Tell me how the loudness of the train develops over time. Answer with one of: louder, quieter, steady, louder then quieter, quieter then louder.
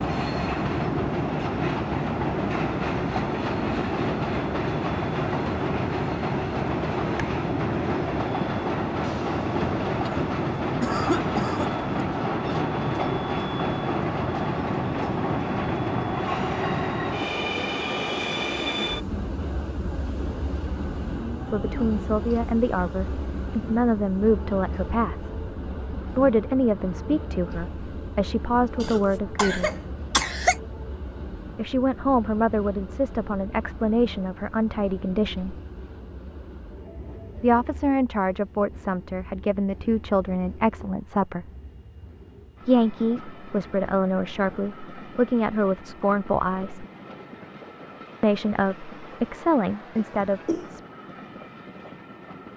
quieter.